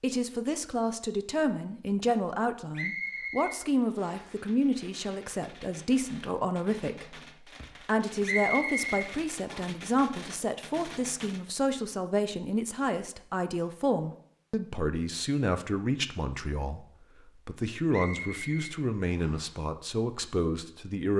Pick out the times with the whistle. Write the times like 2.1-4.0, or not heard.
2.8-4.3, 8.2-9.6, 17.9-19.5.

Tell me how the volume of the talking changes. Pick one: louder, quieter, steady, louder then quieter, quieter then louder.
steady.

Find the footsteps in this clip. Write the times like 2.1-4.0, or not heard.
not heard.